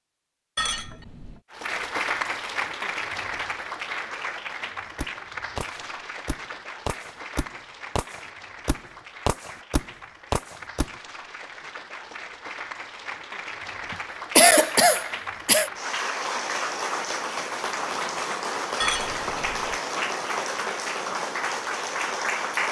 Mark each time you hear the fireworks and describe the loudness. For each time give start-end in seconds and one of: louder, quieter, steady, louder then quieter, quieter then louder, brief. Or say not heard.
5.0-10.9 louder.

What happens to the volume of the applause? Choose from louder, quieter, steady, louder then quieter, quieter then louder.
quieter then louder.